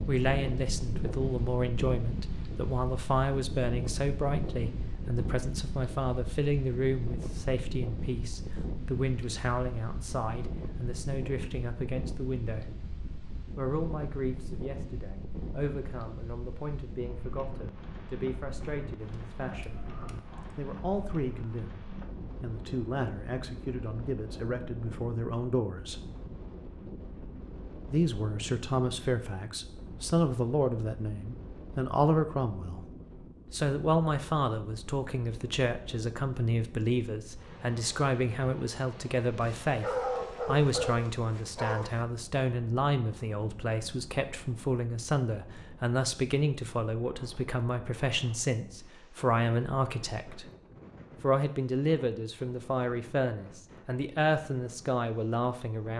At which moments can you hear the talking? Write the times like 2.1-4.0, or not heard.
0.1-12.8, 13.6-19.8, 20.6-26.0, 27.9-32.9, 33.5-50.5, 51.2-55.9.